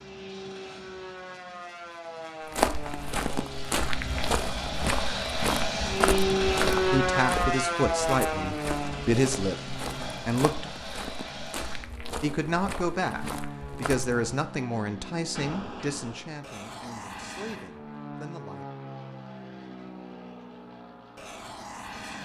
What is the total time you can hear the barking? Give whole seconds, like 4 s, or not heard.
not heard.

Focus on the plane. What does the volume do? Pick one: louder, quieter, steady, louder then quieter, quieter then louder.
louder then quieter.